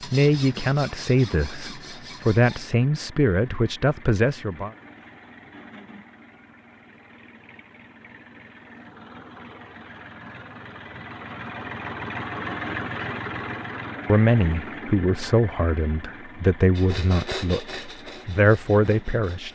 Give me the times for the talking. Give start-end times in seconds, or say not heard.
0.0-4.7, 14.1-19.5.